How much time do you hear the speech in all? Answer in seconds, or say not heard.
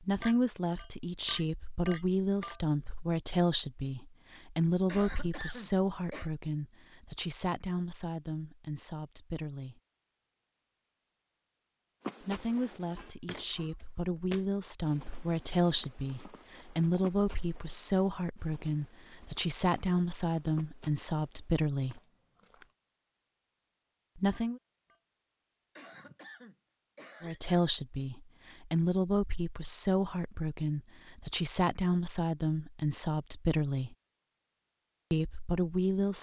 28 s.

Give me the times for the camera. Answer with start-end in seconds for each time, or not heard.
not heard.